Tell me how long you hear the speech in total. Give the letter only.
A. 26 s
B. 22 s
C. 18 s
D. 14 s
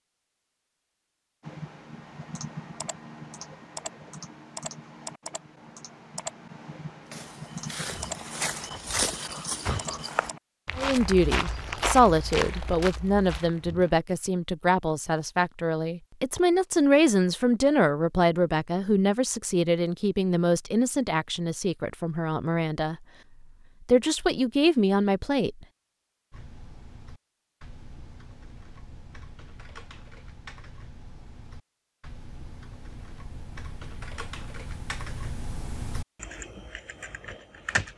D.